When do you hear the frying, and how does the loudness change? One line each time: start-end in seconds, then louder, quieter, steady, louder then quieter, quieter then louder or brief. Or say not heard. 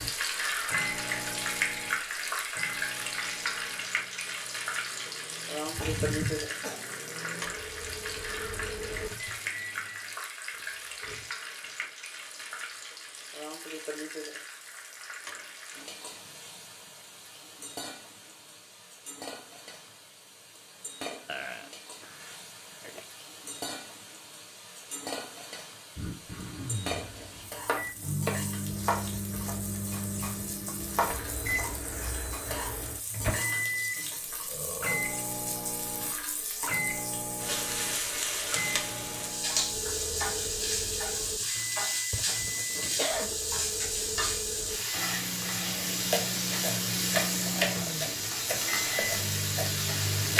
0.0-50.3 quieter then louder.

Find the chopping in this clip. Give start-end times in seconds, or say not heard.
27.6-32.6, 45.7-50.3.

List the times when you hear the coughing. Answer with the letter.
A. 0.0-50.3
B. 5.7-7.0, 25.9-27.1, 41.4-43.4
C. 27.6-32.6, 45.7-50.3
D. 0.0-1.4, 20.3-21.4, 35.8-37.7
B.